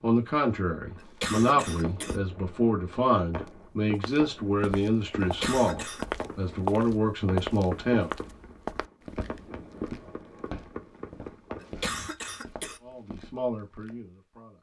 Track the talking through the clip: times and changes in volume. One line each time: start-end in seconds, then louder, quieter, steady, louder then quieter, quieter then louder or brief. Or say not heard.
0.0-8.1 steady
12.8-14.5 brief.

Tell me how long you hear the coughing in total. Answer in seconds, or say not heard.
3 s.